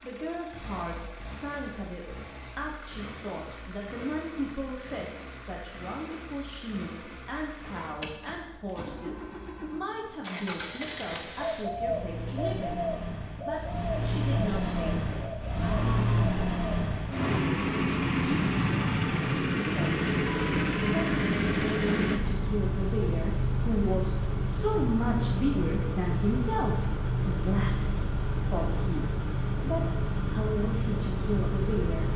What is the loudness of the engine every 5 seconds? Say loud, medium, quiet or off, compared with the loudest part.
quiet, quiet, medium, loud, loud, loud, loud.